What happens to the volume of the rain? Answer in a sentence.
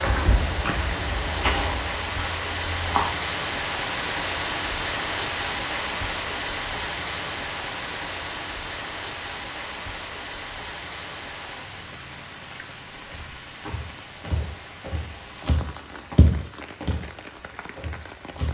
The volume of the rain goes down.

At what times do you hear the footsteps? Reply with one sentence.
You can hear the footsteps from 0.0 to 3.2 s and from 13.1 to 18.4 s.